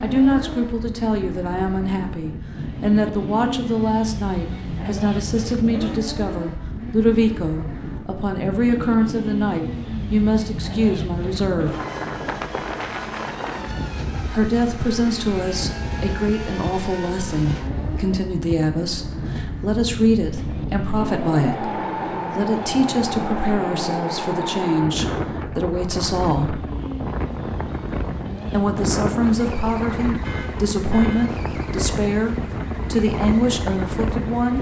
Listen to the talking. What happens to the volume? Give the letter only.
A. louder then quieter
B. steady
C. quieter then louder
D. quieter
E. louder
B.